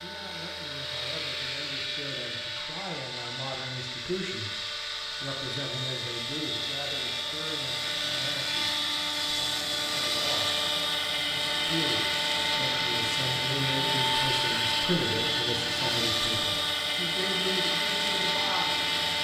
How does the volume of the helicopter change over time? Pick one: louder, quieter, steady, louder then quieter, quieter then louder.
louder.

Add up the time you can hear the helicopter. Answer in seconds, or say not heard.
19 s.